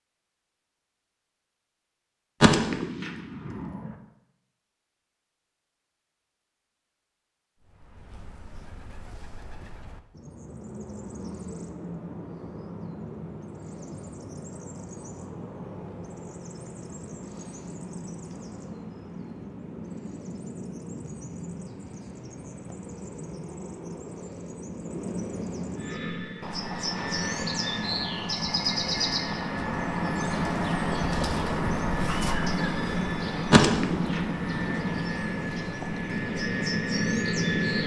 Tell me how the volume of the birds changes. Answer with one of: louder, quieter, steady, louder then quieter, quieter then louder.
louder.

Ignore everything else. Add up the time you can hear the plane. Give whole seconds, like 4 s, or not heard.
12 s.